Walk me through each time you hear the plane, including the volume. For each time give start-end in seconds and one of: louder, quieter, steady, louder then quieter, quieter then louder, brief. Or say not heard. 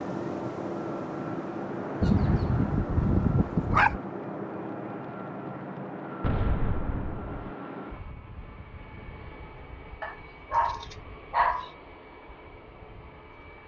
0.0-13.6 quieter.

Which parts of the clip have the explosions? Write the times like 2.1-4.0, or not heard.
6.2-7.5.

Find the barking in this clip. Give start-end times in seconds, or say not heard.
2.0-4.0, 10.0-11.7.